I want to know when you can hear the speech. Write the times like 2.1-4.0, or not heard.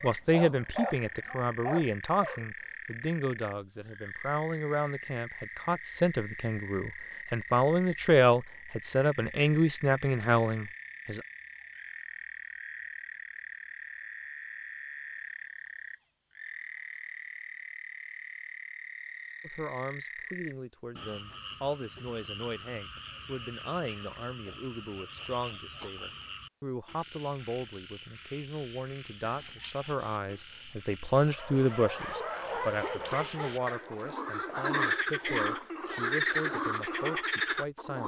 0.0-11.2, 19.4-38.0.